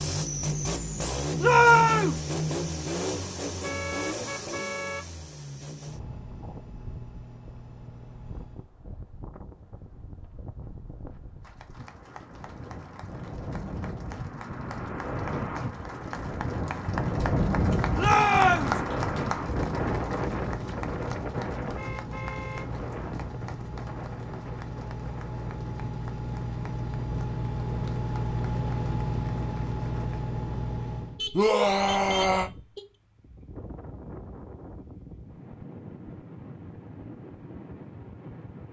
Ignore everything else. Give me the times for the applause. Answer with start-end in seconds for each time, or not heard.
11.4-30.2.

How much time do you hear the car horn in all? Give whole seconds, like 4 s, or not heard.
4 s.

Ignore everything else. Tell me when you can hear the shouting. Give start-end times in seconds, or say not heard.
1.4-2.2, 17.9-18.8, 31.3-32.5.